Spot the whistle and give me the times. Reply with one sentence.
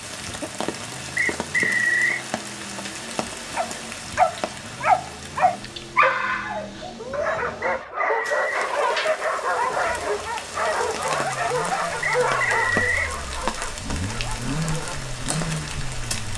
The whistle can be heard from 1.1 to 2.2 s, from 7.6 to 8.6 s and from 12.0 to 13.1 s.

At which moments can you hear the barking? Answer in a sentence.
The barking can be heard from 3.5 to 15.1 s.